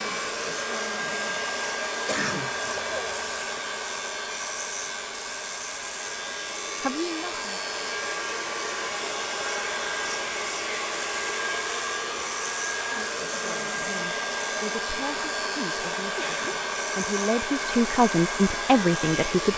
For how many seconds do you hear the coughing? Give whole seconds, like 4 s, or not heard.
2 s.